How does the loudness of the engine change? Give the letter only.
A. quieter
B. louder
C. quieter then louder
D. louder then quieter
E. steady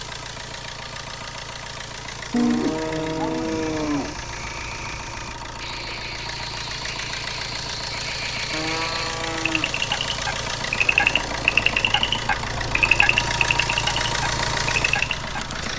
B.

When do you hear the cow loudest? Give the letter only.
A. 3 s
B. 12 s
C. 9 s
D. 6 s
A.